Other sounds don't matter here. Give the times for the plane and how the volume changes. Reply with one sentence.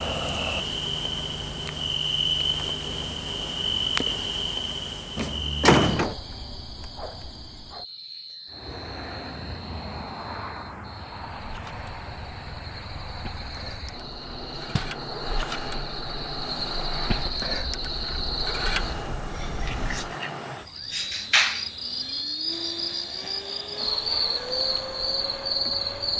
The plane can be heard from 8.4 to 26.1 s, at a steady volume.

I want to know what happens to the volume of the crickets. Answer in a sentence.
The loudness of the crickets goes down, then up.